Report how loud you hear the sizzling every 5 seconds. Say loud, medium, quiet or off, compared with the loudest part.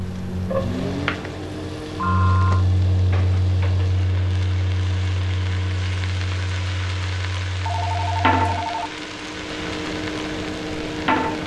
medium, loud, loud.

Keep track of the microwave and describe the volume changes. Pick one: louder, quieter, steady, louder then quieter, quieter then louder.
quieter then louder.